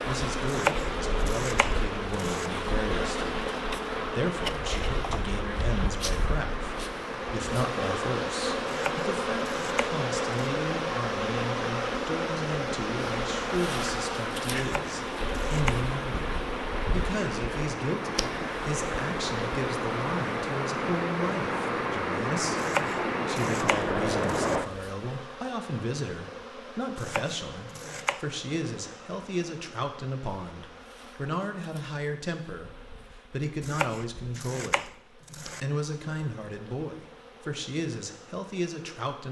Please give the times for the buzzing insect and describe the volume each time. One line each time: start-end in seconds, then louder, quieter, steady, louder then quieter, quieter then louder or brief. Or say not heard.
0.0-39.2 quieter.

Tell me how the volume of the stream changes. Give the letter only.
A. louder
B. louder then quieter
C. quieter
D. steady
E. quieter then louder
A.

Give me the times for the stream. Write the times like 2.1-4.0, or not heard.
0.0-24.7.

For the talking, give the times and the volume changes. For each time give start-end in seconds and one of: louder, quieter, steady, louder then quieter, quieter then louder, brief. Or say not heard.
0.1-32.7 steady
33.3-39.2 steady.